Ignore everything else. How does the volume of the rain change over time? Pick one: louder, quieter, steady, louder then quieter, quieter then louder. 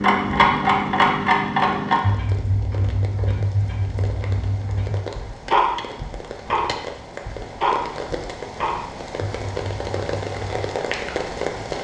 louder.